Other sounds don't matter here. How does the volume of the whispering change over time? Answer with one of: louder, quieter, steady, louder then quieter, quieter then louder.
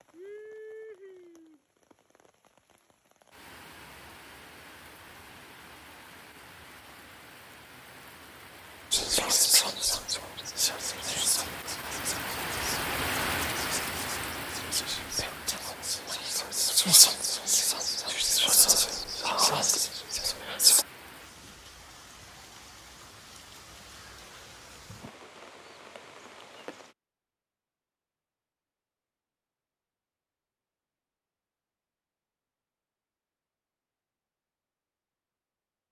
quieter then louder.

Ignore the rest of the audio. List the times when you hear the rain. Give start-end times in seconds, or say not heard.
0.0-26.9.